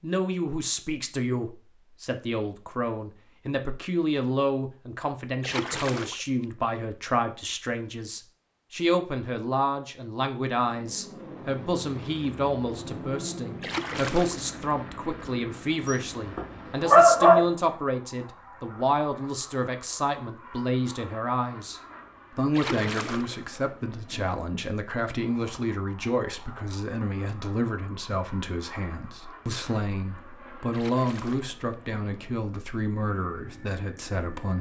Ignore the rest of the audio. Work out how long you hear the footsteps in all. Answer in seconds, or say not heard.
not heard.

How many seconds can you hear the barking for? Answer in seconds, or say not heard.
2 s.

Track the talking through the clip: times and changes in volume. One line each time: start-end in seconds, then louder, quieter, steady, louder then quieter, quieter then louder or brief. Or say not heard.
0.0-34.5 steady.